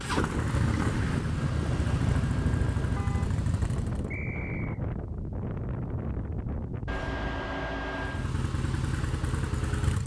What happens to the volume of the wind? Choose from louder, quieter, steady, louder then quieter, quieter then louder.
steady.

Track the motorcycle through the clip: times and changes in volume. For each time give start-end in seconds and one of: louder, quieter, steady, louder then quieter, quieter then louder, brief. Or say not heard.
0.0-4.2 steady
7.8-10.0 brief.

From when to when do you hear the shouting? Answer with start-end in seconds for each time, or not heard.
not heard.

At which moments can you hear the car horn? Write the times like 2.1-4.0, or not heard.
1.4-3.4, 6.8-8.3.